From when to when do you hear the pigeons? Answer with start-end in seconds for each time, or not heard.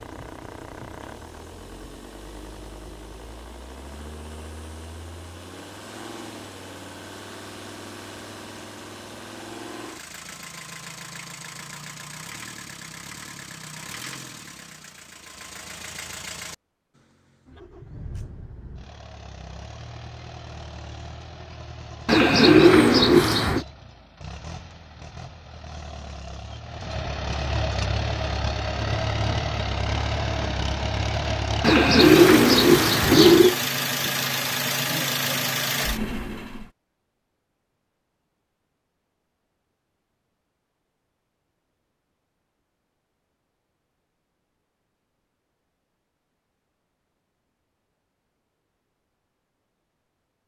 22.1-23.6, 31.6-33.5.